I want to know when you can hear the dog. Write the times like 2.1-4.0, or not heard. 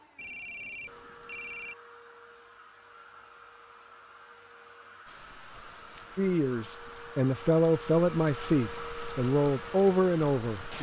not heard.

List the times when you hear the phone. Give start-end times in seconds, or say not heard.
0.1-1.8.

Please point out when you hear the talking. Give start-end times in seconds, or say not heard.
6.2-10.7.